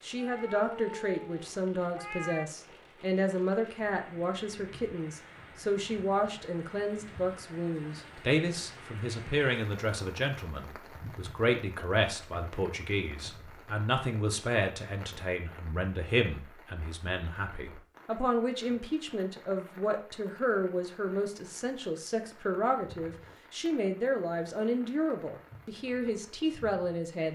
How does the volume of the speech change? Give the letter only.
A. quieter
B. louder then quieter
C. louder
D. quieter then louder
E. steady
E.